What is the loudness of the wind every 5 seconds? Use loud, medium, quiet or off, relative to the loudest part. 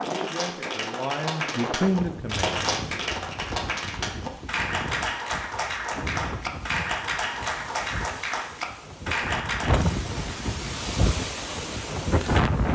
medium, medium, loud.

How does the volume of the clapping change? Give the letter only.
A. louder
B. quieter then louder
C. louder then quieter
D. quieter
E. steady
E.